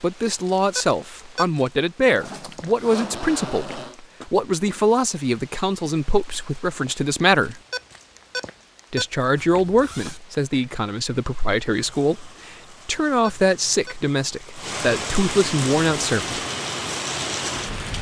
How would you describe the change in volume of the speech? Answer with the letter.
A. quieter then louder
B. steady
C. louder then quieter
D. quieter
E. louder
B.